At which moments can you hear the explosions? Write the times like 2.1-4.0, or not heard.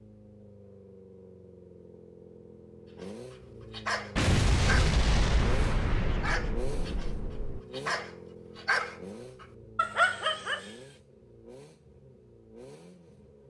4.2-7.6.